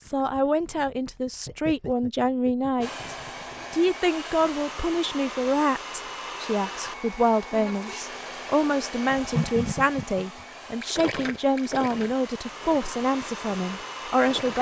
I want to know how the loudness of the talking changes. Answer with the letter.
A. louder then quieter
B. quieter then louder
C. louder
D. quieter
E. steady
E.